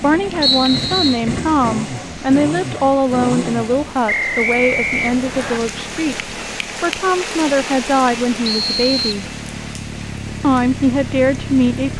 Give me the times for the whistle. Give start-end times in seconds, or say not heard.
0.4-1.2, 4.0-5.6, 8.4-9.2.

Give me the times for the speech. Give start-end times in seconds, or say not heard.
0.0-9.2, 10.4-11.9.